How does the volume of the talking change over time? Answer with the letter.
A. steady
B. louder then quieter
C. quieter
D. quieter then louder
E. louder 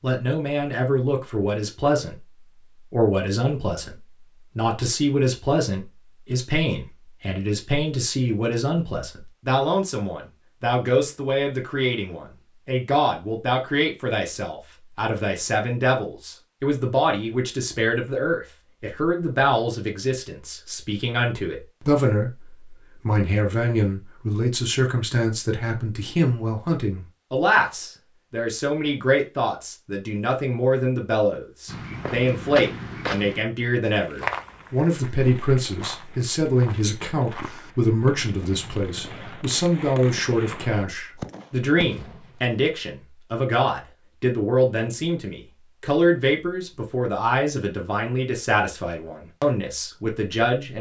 A.